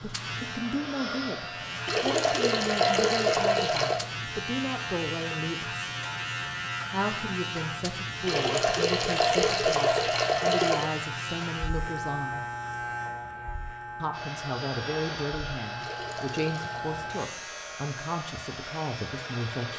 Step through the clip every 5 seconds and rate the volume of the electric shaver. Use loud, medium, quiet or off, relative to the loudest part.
loud, loud, loud, medium.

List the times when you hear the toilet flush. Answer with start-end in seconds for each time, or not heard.
1.9-4.0, 8.2-10.8, 15.8-16.9.